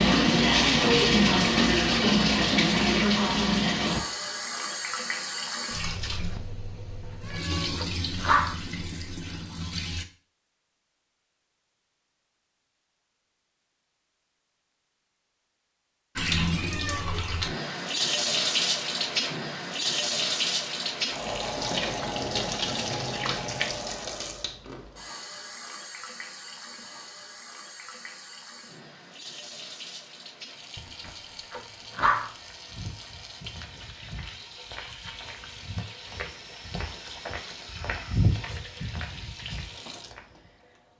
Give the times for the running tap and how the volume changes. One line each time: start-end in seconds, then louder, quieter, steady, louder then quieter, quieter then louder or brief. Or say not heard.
0.0-10.1 quieter
16.1-40.9 quieter.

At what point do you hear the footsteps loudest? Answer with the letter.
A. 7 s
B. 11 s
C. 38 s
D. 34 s
C.